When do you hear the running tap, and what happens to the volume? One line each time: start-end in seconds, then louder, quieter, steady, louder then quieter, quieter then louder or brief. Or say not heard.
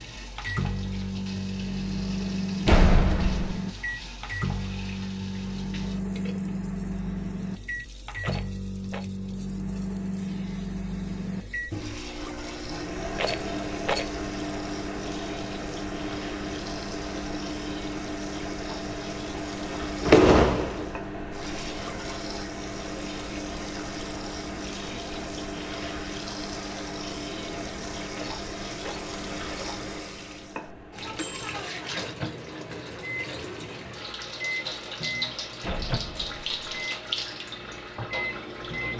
0.0-38.9 louder.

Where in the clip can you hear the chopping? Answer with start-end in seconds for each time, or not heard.
not heard.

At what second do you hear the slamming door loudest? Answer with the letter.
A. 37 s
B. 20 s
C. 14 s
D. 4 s
B.